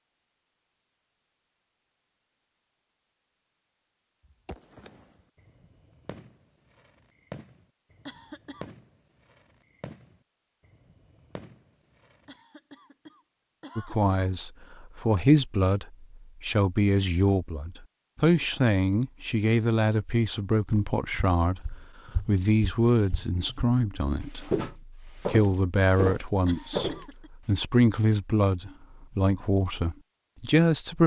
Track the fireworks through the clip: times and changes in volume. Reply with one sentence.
You can hear the fireworks from 4.2 to 12.3 s, getting louder then quieter.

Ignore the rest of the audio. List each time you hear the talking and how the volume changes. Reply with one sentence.
You can hear the talking from 13.8 to 31.0 s, at a steady volume.